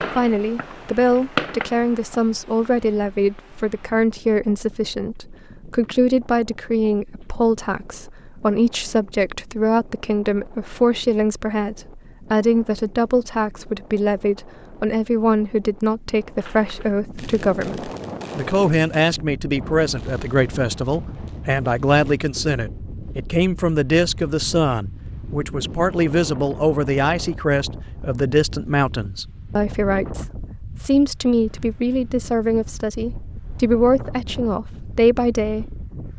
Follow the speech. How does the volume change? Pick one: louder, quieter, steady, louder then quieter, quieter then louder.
steady.